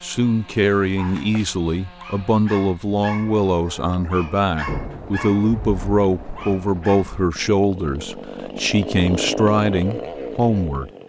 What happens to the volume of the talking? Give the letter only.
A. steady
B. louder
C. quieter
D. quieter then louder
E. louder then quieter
A.